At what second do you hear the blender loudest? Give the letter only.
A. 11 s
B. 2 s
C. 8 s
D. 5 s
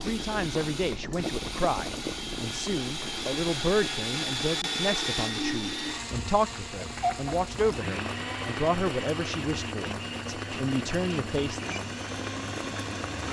D.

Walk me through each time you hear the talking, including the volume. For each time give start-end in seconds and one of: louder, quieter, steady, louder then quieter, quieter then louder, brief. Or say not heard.
0.0-11.7 steady.